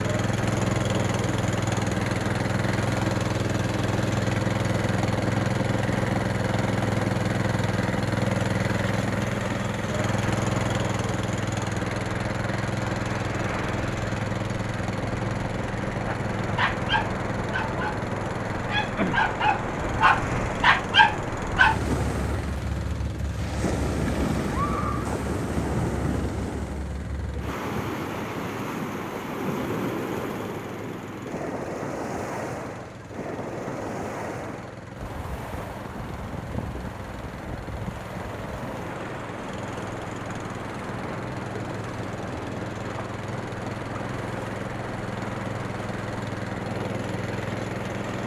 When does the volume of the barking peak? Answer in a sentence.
The loudest moment of the barking is at 21 seconds.